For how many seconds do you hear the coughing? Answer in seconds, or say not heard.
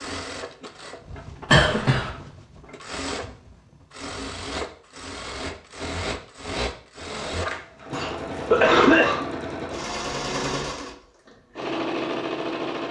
2 s.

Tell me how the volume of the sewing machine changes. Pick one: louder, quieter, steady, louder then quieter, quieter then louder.
louder.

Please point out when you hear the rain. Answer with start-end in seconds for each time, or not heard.
not heard.